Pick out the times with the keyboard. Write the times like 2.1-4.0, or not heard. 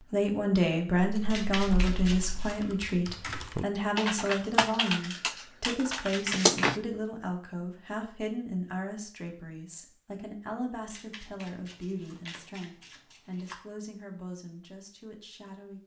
0.9-6.8.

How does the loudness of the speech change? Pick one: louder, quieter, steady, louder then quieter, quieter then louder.
quieter.